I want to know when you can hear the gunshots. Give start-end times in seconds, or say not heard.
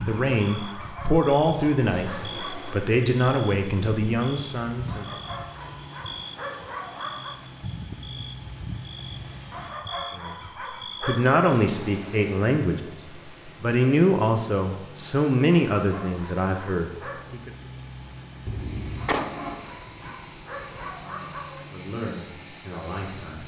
18.4-19.9.